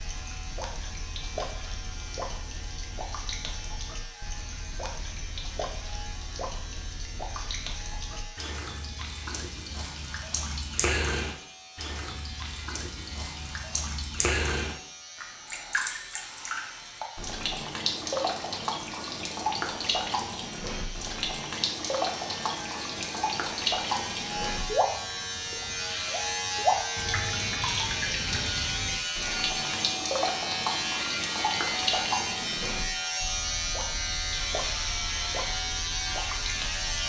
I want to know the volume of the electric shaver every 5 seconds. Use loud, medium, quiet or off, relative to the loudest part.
quiet, quiet, quiet, quiet, medium, loud, loud, loud.